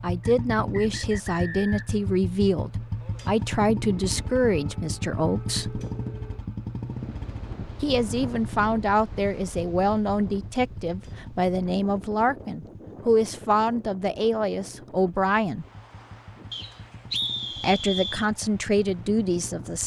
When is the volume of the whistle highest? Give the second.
17 s.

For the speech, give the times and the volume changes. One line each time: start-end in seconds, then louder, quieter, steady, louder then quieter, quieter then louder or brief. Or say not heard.
0.0-5.8 steady
7.8-15.7 steady
17.6-19.8 brief.